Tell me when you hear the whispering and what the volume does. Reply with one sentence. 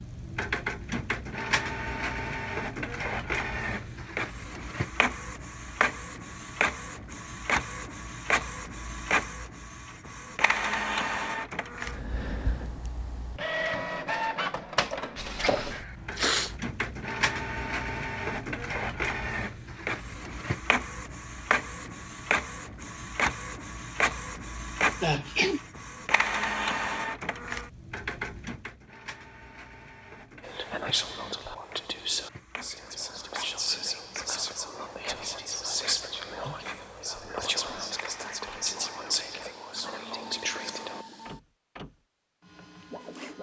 The whispering can be heard from 30.4 to 41.0 s, at a steady volume.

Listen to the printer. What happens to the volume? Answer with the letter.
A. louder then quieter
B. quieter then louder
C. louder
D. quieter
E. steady
D.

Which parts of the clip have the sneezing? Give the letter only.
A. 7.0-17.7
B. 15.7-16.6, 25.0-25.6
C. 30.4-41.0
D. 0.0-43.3
B.